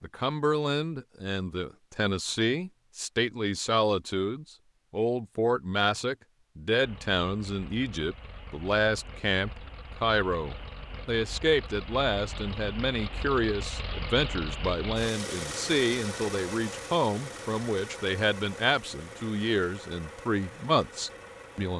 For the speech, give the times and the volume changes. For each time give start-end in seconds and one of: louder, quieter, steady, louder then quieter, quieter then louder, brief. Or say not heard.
0.0-21.7 steady.